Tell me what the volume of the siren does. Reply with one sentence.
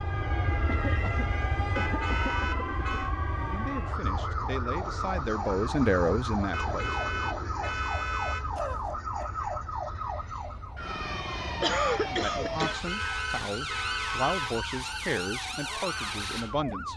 The loudness of the siren stays about the same.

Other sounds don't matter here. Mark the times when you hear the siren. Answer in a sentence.
The siren can be heard from 0.0 to 16.9 s.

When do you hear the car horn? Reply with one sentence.
You can hear the car horn from 1.8 to 3.1 s, from 6.5 to 8.5 s and from 12.6 to 14.6 s.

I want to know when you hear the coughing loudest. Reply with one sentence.
The volume of the coughing peaks at 12 seconds.